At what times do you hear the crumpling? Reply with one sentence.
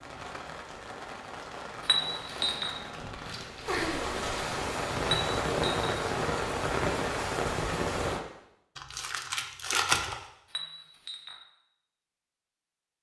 The crumpling can be heard from 2.2 to 3.9 s and from 8.8 to 10.2 s.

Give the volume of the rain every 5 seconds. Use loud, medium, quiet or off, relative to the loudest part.
medium, loud, off.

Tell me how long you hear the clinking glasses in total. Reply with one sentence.
You can hear the clinking glasses for 3 seconds altogether.